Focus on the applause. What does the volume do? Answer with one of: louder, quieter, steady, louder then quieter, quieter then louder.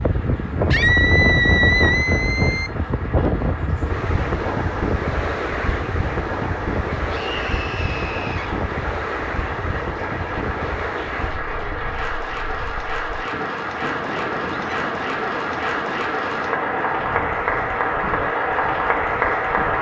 louder.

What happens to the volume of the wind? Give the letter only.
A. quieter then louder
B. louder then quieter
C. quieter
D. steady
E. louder
C.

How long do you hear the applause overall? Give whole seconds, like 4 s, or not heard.
20 s.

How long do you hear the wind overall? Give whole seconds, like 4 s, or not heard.
20 s.